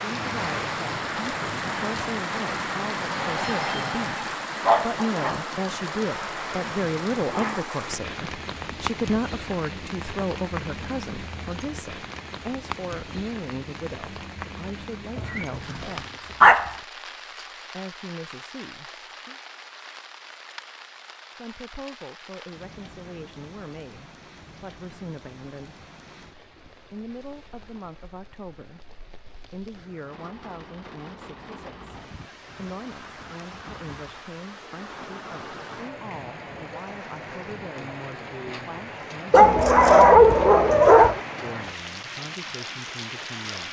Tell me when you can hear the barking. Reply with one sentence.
You can hear the barking from 3.1 to 4.9 s, from 15.2 to 16.7 s and from 39.3 to 41.2 s.